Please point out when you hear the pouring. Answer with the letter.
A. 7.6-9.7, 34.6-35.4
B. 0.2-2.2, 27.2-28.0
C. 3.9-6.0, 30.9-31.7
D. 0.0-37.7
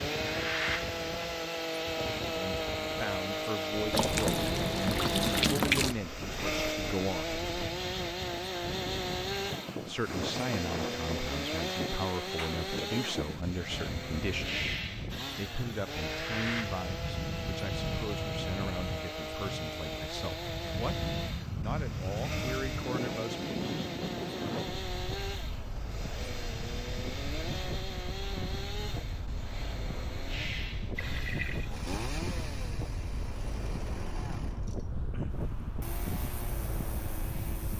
C.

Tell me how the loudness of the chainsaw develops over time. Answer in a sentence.
The loudness of the chainsaw goes down.